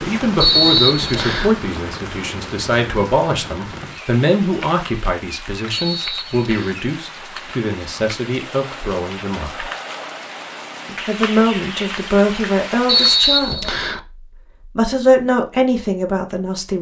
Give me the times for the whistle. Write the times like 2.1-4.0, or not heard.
0.4-1.6, 5.7-6.8, 12.8-14.0.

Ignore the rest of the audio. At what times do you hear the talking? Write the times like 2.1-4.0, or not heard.
0.0-9.7, 10.8-13.8, 14.8-16.7.